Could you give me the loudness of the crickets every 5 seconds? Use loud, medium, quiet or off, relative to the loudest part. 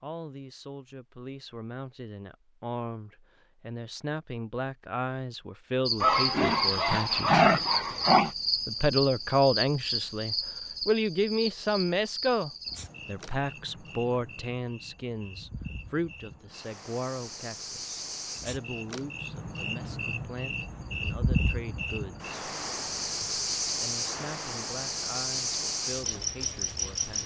off, loud, medium, medium, loud, loud.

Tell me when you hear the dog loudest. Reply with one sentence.
The volume of the dog peaks at 7 seconds.